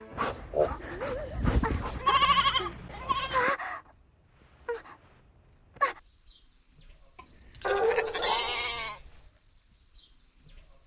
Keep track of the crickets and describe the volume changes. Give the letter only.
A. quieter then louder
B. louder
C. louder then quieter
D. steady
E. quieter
E.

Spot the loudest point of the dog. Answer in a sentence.
The volume of the dog peaks at 8 seconds.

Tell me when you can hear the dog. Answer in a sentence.
The dog can be heard from 0.1 to 2.0 s and from 7.6 to 9.3 s.